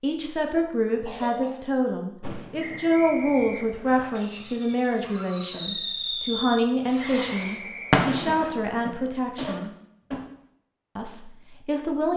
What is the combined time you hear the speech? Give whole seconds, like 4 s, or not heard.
11 s.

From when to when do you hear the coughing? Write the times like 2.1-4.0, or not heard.
0.6-1.6, 5.0-5.7, 8.2-10.2.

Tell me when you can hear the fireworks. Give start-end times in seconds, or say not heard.
2.2-8.7.